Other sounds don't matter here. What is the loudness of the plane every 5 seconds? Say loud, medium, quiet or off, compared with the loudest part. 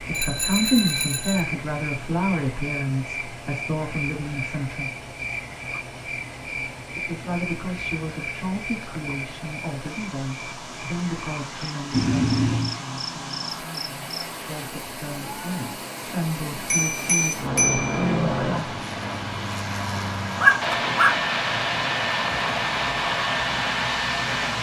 off, off, quiet, medium, loud.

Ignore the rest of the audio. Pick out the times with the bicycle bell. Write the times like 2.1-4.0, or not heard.
0.1-1.4, 11.9-12.8, 16.7-18.2.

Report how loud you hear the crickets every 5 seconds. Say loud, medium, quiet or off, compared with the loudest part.
loud, loud, loud, off, off.